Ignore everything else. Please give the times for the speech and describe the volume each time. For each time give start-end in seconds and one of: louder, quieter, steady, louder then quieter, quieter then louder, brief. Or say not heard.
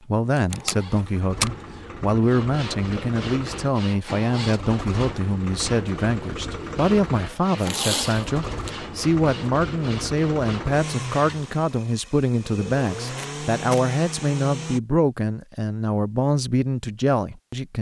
0.1-17.7 steady.